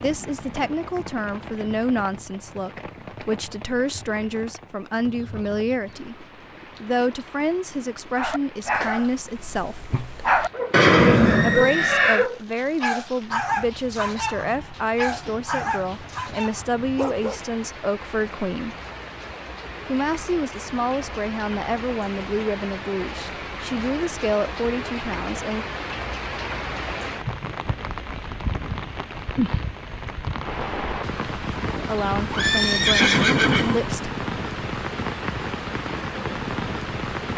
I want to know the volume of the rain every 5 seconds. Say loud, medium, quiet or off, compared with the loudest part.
medium, quiet, quiet, medium, medium, loud, loud, loud.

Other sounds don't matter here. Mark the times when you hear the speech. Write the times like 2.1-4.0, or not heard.
0.0-9.8, 11.4-18.8, 19.9-25.6, 31.8-34.1.